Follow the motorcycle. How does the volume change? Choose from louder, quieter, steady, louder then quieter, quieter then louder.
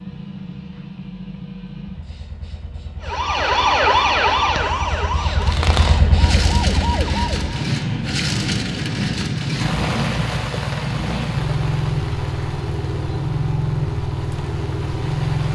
louder.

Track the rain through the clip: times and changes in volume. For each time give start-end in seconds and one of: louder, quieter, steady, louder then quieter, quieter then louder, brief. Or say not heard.
5.4-15.5 quieter.